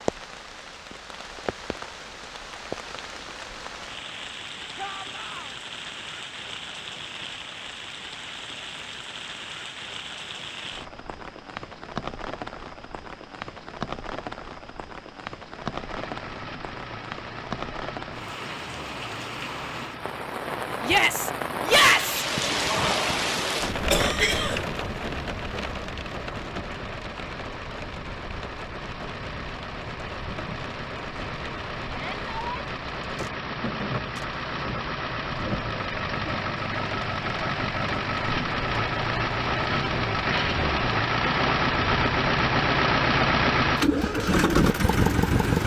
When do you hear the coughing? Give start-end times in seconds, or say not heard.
23.9-24.7.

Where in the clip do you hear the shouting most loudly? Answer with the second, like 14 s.
22 s.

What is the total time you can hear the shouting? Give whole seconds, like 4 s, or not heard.
3 s.